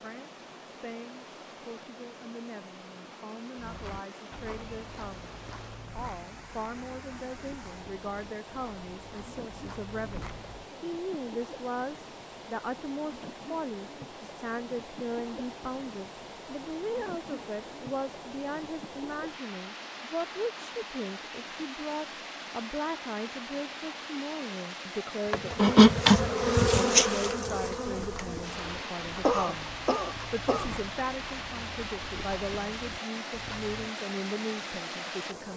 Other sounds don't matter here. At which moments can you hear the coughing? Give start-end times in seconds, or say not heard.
29.2-30.8.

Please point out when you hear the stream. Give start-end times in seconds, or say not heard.
0.0-35.5.